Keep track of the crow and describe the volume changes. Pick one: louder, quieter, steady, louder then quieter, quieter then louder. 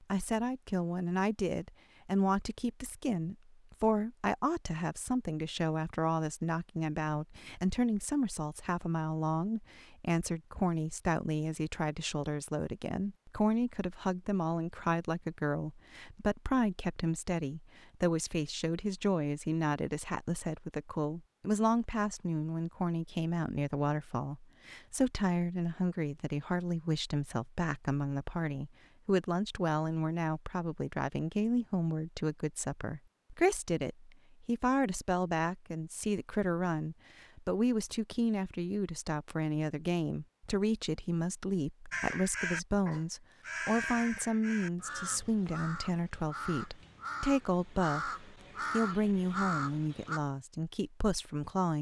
quieter then louder.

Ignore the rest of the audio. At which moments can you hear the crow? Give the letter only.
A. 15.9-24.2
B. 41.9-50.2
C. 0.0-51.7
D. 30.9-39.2
B.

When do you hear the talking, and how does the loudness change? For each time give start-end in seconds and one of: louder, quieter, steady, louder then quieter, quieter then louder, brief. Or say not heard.
0.0-51.7 steady.